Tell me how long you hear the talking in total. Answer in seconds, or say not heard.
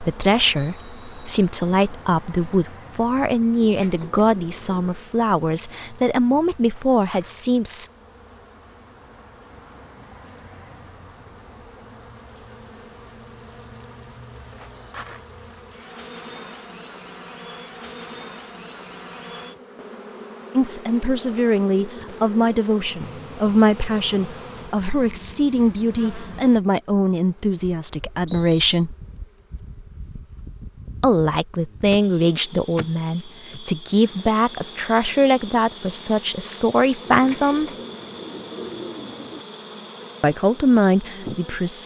25 s.